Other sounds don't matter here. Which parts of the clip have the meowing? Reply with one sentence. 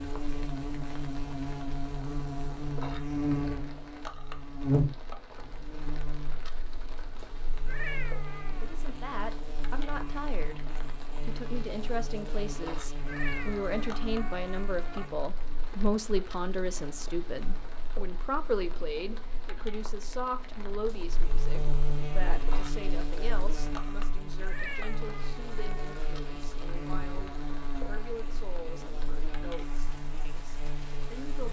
The meowing can be heard from 7.7 to 8.8 s, from 13.1 to 15.1 s and from 24.4 to 26.1 s.